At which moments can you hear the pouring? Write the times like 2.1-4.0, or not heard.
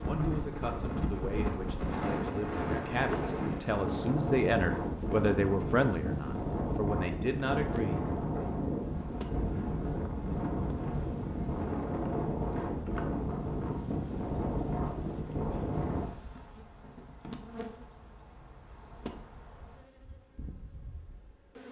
not heard.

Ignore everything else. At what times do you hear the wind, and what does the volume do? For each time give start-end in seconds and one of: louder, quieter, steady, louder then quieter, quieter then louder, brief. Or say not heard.
0.0-16.1 steady.